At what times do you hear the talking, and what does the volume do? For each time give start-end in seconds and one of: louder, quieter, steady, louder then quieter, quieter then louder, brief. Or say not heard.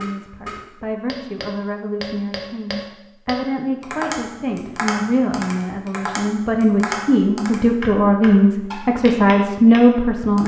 0.0-10.4 louder.